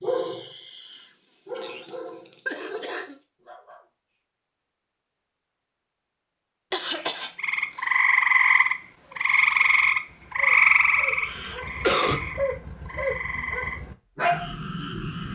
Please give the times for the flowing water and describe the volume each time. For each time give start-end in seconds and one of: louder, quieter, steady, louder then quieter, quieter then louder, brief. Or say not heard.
not heard.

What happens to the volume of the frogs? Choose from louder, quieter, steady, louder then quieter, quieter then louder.
quieter.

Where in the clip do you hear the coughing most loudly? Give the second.
12 s.